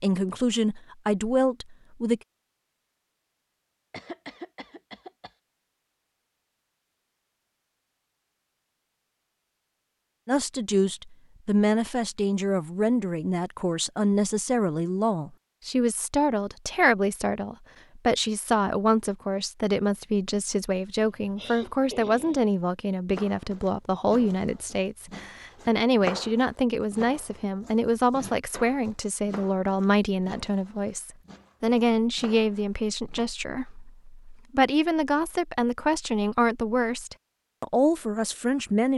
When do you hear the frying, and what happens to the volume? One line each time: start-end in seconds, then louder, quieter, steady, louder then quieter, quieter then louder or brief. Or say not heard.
not heard.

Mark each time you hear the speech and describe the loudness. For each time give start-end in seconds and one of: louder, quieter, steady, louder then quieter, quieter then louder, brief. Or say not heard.
0.0-2.2 brief
10.2-38.9 steady.